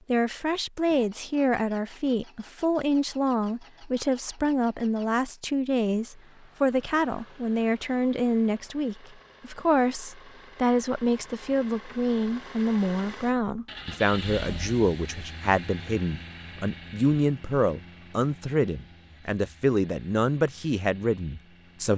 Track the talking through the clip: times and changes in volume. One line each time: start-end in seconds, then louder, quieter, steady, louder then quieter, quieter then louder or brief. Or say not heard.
0.1-21.9 steady.